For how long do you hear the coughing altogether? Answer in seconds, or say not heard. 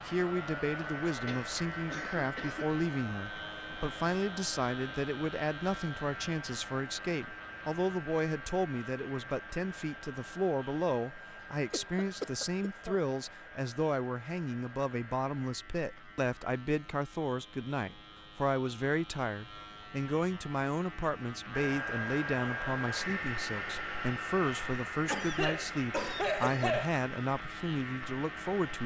5 s.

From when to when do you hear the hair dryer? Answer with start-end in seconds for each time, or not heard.
0.0-15.3, 21.5-28.8.